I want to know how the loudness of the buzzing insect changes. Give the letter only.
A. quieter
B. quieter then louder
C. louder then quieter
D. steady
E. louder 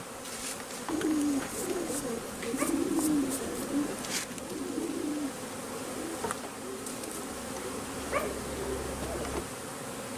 D.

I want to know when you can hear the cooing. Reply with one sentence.
The cooing can be heard from 0.8 to 9.4 s.